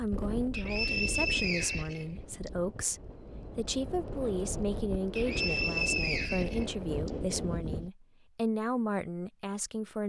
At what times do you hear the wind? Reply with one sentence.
The wind can be heard from 0.0 to 7.9 s.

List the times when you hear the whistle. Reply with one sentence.
You can hear the whistle from 0.5 to 2.5 s and from 5.2 to 7.1 s.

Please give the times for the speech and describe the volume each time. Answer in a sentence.
You can hear the speech from 0.0 to 10.0 s, at a steady volume.